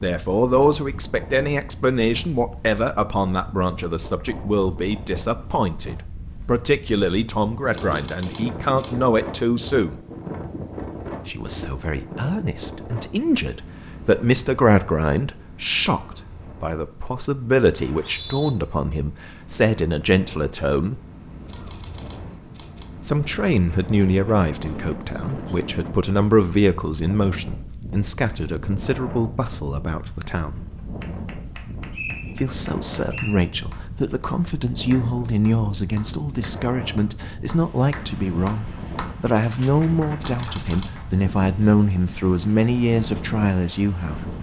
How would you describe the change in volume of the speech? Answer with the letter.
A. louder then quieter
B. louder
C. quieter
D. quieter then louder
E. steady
E.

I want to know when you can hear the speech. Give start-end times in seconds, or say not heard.
0.0-10.0, 11.2-21.0, 23.0-30.6, 32.4-44.3.